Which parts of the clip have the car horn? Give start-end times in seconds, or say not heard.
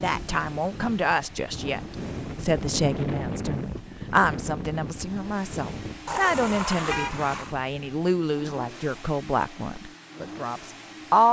6.0-7.5.